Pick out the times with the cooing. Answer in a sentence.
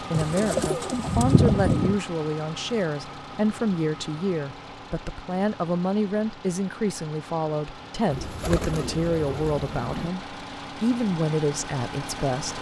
You can hear the cooing from 0.1 to 2.0 s and from 8.1 to 10.1 s.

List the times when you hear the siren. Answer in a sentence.
The siren can't be heard in this clip.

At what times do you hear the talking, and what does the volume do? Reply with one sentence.
The talking can be heard from 0.0 to 12.5 s, at a steady volume.